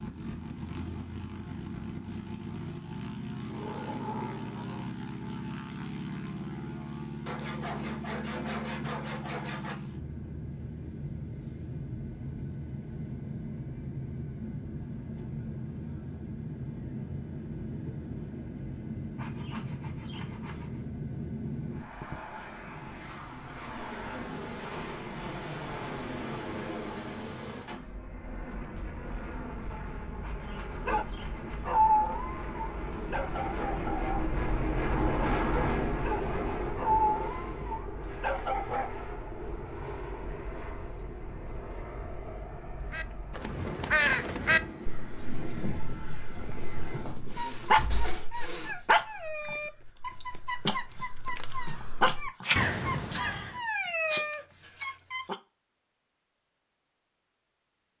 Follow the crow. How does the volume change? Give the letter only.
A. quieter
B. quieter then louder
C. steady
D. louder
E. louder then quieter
B.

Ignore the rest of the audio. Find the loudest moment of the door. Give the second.
4 s.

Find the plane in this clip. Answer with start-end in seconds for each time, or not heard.
0.0-47.2.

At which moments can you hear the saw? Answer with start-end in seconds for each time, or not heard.
7.2-9.8, 19.1-20.9, 30.2-31.8, 47.1-48.8.